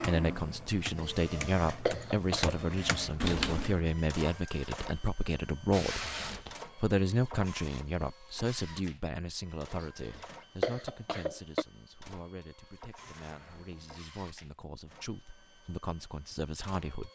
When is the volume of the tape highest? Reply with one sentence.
The loudest moment of the tape is at 6 seconds.